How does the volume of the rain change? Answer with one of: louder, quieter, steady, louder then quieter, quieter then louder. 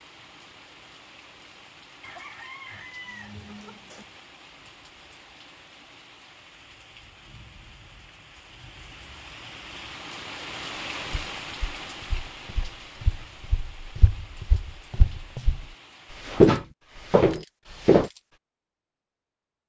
louder then quieter.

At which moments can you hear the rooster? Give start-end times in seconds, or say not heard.
2.0-4.0.